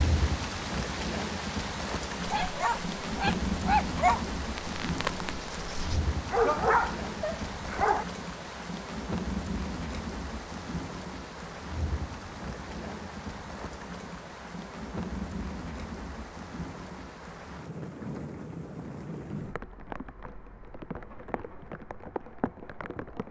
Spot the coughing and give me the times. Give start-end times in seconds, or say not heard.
not heard.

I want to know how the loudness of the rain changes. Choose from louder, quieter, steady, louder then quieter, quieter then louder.
quieter.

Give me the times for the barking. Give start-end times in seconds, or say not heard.
2.2-8.1.